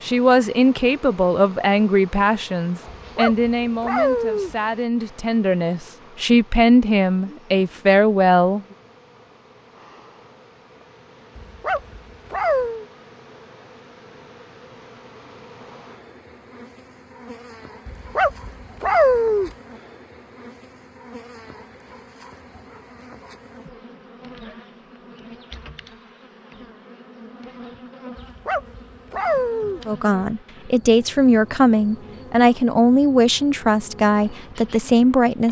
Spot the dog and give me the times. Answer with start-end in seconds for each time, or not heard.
3.0-4.5, 11.3-12.8, 17.9-19.5, 28.1-29.8.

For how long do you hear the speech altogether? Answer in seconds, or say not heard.
14 s.